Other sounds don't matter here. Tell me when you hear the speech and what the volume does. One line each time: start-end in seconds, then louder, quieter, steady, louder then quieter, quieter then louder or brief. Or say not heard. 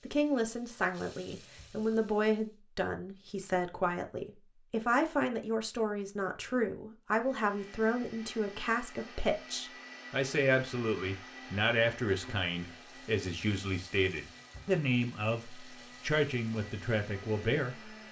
0.1-17.9 steady.